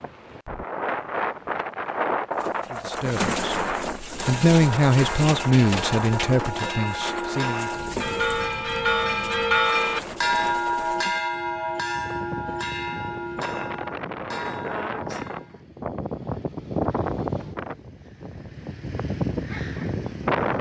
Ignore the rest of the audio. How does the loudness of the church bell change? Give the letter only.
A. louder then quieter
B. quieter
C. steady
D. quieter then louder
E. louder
A.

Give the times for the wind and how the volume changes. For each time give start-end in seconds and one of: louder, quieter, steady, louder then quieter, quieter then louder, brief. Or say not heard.
0.0-20.5 quieter then louder.